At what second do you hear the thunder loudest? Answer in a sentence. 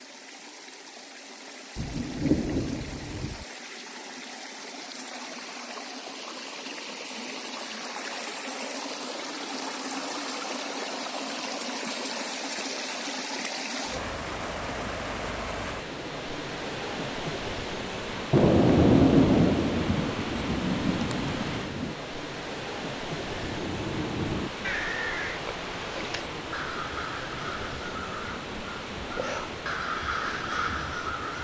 The volume of the thunder peaks at 19 seconds.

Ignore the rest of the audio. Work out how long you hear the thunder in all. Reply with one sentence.
The thunder can be heard for 5 seconds in total.